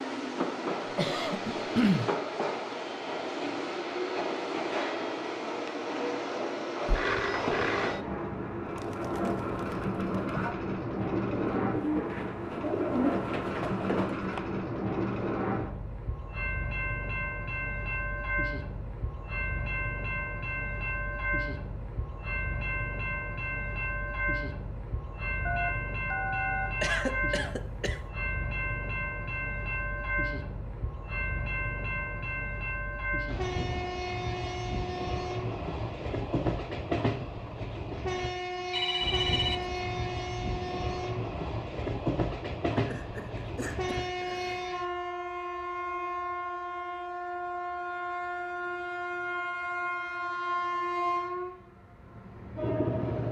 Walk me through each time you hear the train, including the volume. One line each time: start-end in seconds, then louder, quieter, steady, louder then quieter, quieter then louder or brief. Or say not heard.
0.0-53.2 steady.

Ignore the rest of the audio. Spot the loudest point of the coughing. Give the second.
2 s.